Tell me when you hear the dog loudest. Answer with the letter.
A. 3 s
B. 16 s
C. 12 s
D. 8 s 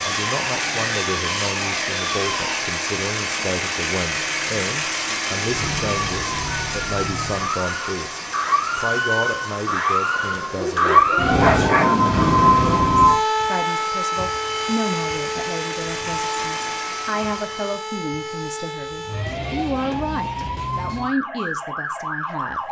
C.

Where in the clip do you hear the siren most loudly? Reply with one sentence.
The loudest moment of the siren is at 13 seconds.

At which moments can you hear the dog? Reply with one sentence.
The dog can be heard from 10.1 to 12.1 s.